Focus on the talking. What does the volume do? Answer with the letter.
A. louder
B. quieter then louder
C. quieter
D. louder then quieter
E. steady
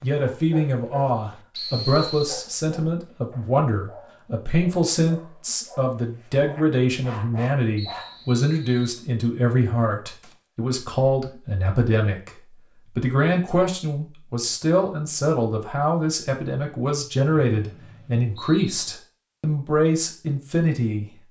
E.